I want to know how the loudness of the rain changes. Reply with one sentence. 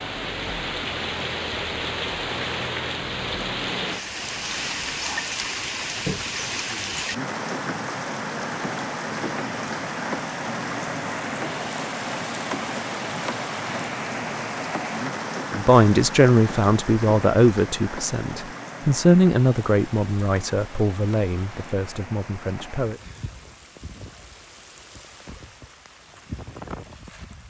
The volume of the rain goes down.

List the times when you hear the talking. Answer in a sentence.
You can hear the talking from 15.5 to 23.0 s.